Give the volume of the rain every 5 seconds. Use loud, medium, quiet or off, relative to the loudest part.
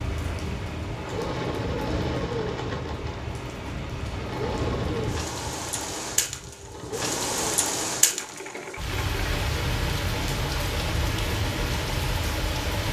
medium, loud, loud.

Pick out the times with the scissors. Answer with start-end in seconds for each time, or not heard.
not heard.